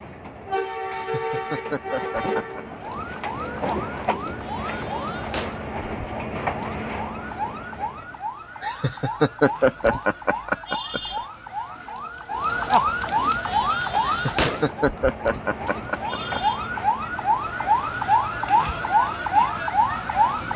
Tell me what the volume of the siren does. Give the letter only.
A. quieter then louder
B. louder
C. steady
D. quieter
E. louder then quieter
B.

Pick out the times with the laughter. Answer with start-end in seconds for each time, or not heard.
0.9-2.6, 8.6-11.2, 14.0-16.6.